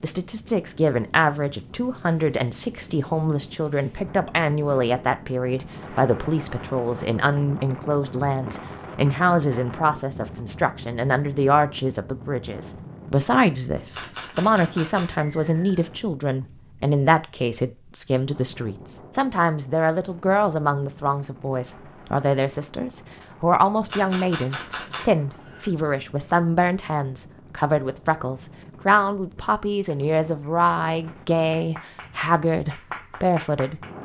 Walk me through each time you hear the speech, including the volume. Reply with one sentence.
The speech can be heard from 0.0 to 33.9 s, at a steady volume.